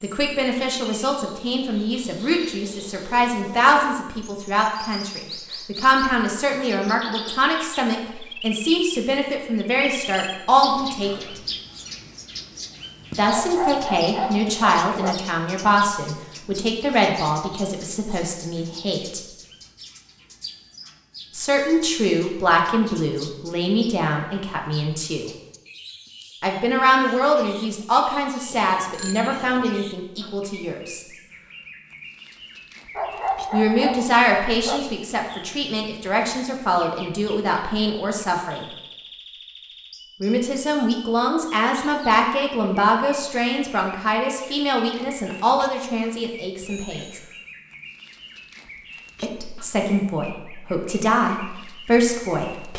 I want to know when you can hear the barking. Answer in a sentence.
The barking can be heard from 13.3 to 15.2 s and from 33.0 to 34.9 s.